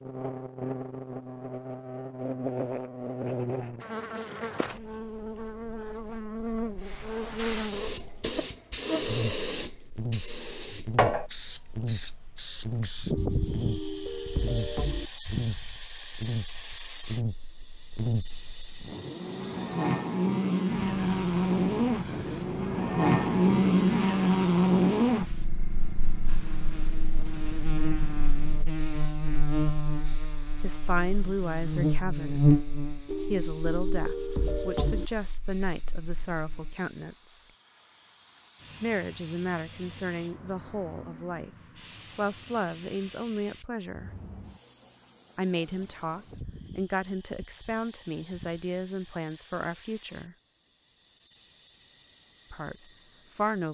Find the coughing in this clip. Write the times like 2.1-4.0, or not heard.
not heard.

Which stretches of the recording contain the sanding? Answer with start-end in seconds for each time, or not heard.
13.1-15.1, 33.0-35.1.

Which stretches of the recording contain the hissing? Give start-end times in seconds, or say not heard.
6.8-53.6.